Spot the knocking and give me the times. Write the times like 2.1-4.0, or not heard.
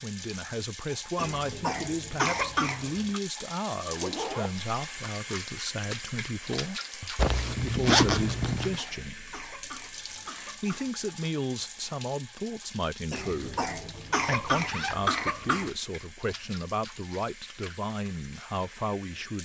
not heard.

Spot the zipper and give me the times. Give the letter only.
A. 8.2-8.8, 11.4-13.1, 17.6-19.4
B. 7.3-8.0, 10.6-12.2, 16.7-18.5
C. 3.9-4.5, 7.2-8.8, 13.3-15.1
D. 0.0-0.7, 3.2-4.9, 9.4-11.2
C.